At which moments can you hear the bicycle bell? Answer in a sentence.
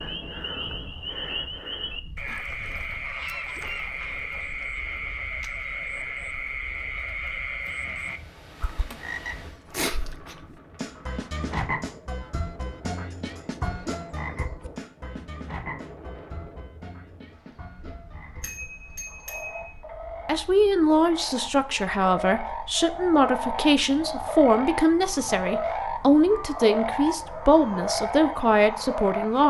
The bicycle bell can be heard from 18.4 to 19.7 s.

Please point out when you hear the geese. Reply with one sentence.
The geese can be heard from 2.9 to 4.3 s.